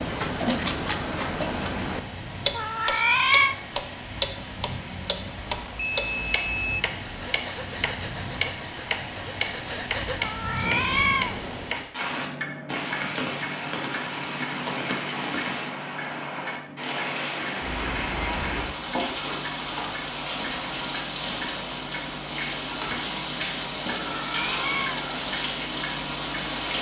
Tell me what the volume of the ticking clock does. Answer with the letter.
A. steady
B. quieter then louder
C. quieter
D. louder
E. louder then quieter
C.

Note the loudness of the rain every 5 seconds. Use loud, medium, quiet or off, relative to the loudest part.
medium, medium, loud, loud, loud, loud.